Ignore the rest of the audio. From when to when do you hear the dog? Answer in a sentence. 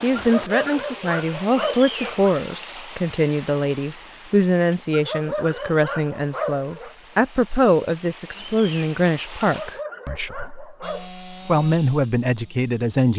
The dog can be heard from 0.1 to 2.4 s, from 4.9 to 7.0 s and from 9.4 to 11.1 s.